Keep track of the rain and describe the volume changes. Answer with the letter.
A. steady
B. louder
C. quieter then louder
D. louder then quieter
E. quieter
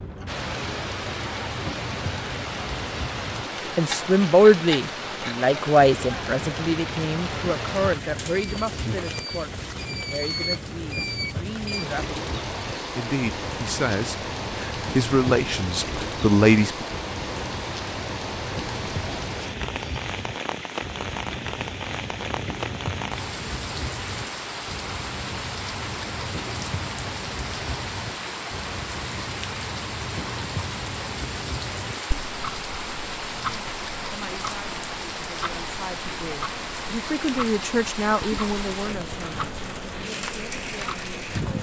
A.